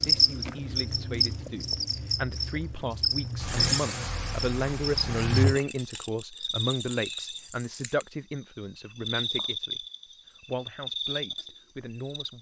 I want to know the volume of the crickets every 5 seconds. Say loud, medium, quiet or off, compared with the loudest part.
loud, medium, medium.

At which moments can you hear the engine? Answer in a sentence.
You can hear the engine from 3.4 to 5.5 s.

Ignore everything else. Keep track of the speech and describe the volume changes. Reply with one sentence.
The loudness of the speech goes up, then down.